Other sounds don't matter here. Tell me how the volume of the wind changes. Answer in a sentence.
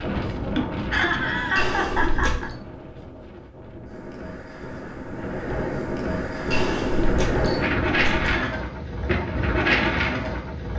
The loudness of the wind goes down, then up.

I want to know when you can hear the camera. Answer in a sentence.
The camera can be heard from 1.6 to 2.5 s and from 6.5 to 8.3 s.